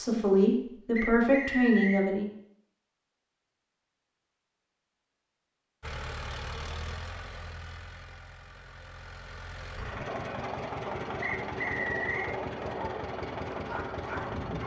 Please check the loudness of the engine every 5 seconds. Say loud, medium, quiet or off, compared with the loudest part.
off, medium, loud.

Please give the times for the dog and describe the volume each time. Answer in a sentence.
You can hear the dog from 10.1 to 14.6 s, at a steady volume.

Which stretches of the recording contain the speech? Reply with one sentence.
You can hear the speech from 0.0 to 2.3 s.